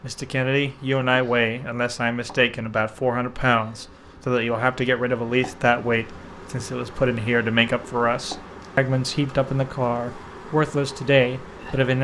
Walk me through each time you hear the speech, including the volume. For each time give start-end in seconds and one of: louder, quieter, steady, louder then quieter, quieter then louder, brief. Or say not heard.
0.0-12.0 steady.